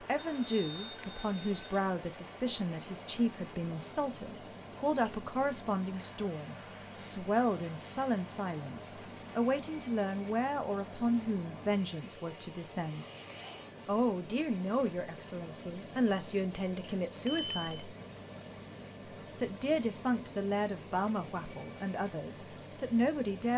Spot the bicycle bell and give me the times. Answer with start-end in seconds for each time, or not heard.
0.1-1.9, 17.2-17.8.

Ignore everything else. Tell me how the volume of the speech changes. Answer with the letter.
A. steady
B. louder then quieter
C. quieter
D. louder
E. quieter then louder
A.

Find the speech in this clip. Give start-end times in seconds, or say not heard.
0.0-13.1, 13.8-17.9, 19.4-23.5.